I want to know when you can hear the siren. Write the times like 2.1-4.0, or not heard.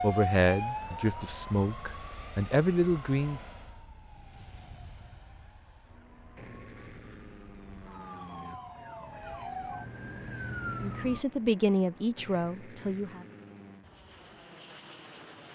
0.0-11.2.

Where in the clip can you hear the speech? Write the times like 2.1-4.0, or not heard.
0.0-3.4, 10.8-13.2.